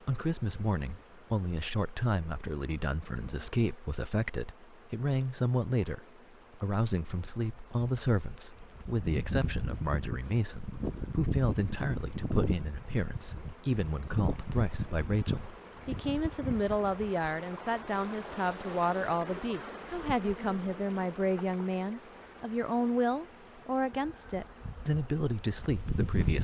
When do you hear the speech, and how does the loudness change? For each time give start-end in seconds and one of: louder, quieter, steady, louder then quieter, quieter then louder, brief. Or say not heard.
0.1-26.4 steady.